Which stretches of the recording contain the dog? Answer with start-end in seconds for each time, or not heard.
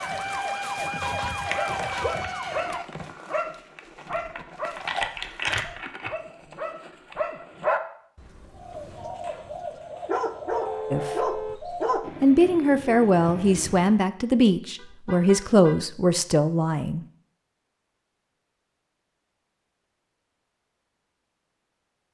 1.4-12.1.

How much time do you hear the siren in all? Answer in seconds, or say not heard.
3 s.